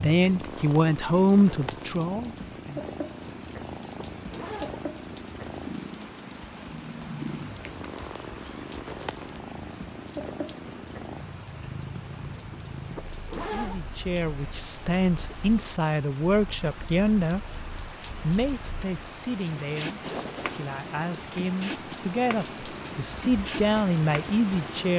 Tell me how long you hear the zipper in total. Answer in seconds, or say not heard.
2 s.